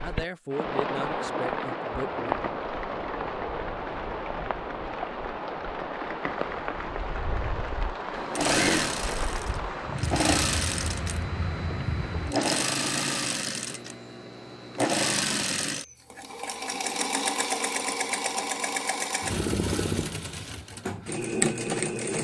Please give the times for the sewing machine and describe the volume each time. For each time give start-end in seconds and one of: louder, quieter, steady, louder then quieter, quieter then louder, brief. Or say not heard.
8.2-22.1 steady.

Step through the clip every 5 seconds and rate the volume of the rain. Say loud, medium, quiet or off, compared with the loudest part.
loud, loud, loud, off, off.